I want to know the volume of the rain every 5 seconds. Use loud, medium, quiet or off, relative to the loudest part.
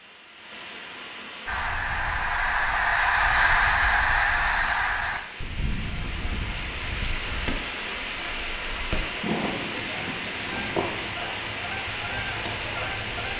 medium, loud, loud.